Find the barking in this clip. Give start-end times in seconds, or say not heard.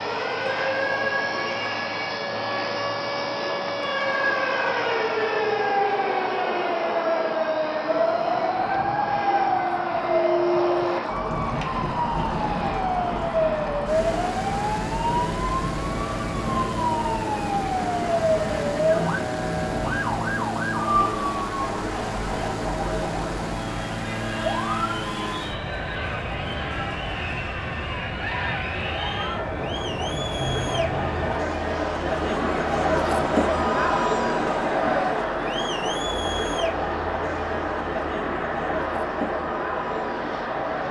not heard.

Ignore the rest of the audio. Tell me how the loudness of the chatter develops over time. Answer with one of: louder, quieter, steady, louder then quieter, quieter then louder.
louder.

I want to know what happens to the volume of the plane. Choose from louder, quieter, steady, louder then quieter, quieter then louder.
steady.